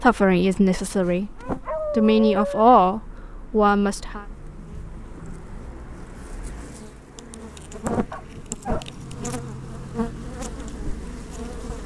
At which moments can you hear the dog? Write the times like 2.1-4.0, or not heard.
0.9-2.8, 8.1-8.8.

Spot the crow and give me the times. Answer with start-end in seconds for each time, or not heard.
not heard.